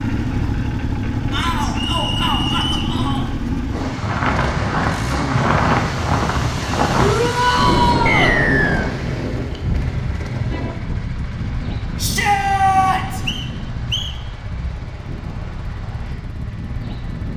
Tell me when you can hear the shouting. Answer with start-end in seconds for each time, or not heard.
1.3-3.2, 7.0-8.3, 11.9-13.2.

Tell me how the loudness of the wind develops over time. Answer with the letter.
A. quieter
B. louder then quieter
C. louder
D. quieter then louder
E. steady
B.